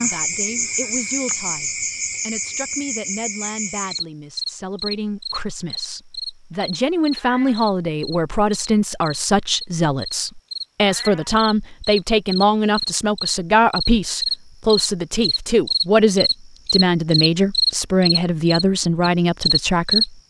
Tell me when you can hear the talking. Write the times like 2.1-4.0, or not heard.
0.0-20.2.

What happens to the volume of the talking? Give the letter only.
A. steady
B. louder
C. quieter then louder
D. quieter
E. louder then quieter
B.